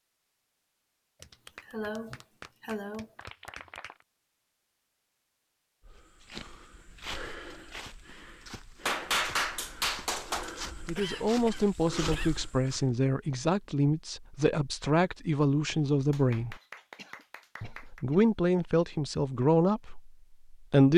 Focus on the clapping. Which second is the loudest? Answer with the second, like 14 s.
9 s.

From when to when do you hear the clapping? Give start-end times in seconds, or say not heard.
1.2-4.0, 8.8-10.5, 16.1-18.0.